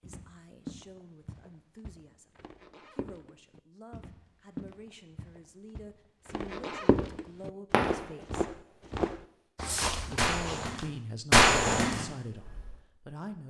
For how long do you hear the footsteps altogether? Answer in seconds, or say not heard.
11 s.